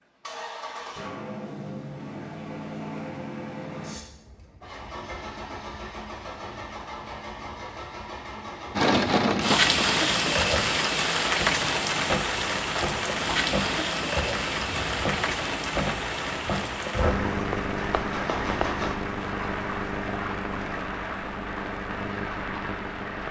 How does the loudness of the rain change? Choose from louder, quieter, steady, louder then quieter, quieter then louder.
quieter.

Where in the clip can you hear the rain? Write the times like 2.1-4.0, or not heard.
8.8-23.2.